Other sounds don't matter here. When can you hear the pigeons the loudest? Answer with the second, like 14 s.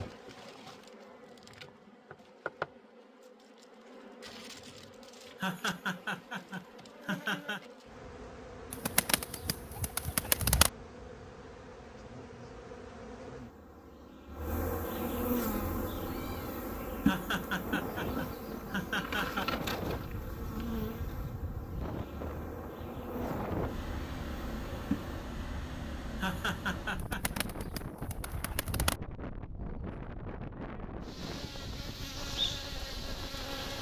10 s.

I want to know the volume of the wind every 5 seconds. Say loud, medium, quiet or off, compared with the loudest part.
off, off, off, loud, loud, loud, loud.